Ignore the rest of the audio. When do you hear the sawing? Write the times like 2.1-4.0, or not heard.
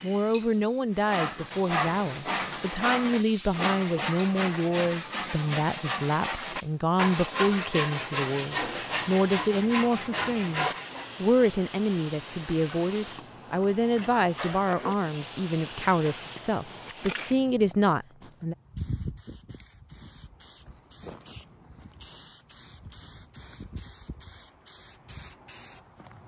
0.9-11.1.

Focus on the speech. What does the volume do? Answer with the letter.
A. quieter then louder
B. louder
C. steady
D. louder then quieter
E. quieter
C.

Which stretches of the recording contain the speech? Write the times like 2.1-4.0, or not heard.
0.0-18.6.